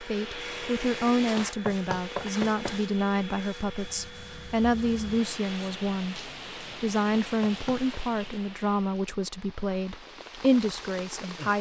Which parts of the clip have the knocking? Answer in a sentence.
The knocking can be heard from 1.4 to 2.8 s and from 7.1 to 7.8 s.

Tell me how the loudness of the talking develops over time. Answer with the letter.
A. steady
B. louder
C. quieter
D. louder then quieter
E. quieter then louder
A.